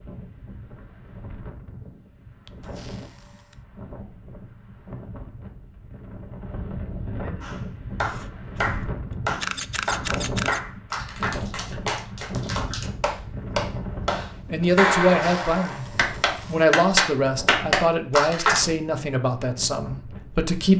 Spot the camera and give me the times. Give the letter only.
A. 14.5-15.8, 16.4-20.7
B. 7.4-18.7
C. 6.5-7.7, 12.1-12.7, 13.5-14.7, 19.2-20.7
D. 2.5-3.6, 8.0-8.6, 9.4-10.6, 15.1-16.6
D.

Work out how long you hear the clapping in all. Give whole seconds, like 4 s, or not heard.
11 s.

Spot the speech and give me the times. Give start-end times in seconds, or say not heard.
14.5-15.8, 16.4-20.7.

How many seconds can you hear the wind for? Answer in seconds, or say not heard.
21 s.